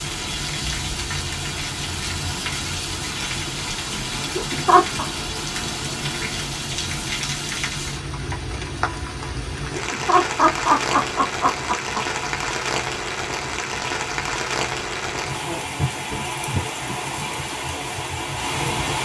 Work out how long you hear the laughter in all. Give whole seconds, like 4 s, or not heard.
3 s.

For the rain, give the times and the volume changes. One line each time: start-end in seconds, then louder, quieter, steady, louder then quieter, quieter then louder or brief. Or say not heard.
0.0-18.9 steady.